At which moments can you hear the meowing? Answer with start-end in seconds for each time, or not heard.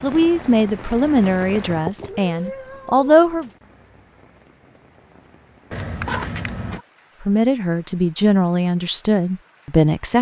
1.9-3.5, 5.7-6.8.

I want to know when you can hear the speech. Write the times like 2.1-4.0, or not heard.
0.0-3.5, 7.2-10.1.